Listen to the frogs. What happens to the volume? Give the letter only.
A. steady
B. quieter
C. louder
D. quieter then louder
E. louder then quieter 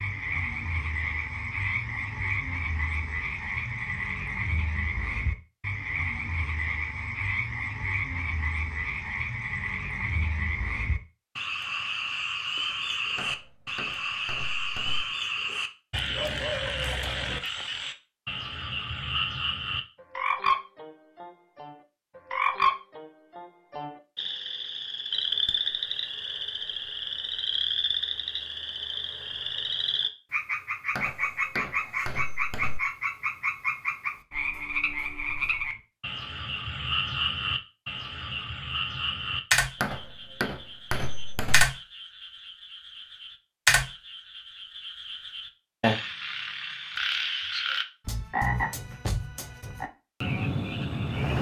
A.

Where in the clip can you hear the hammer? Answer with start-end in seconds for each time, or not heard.
13.2-15.1, 30.9-32.8, 39.8-41.6.